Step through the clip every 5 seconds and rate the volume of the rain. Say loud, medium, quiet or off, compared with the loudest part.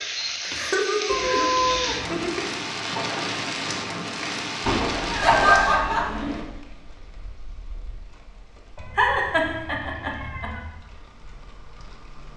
loud, medium, quiet.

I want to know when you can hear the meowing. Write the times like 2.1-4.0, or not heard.
1.1-2.2, 4.7-6.5, 8.8-10.7.